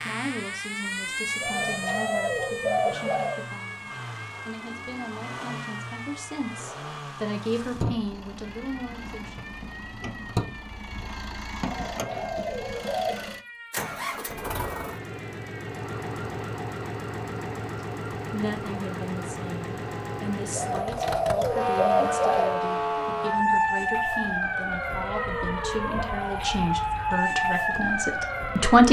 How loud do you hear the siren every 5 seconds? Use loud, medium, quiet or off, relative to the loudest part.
medium, quiet, quiet, quiet, loud, loud.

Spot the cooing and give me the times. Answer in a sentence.
The cooing can be heard from 1.4 to 3.5 s, from 11.6 to 13.3 s and from 20.6 to 22.6 s.